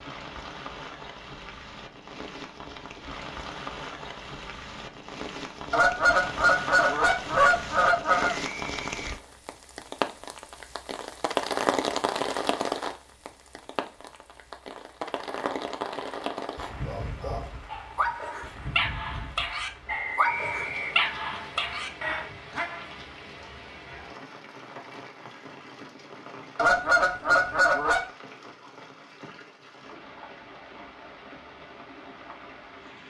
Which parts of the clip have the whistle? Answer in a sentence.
The whistle can be heard from 8.3 to 9.4 s and from 19.9 to 21.1 s.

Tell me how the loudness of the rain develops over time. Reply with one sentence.
The volume of the rain goes up, then down.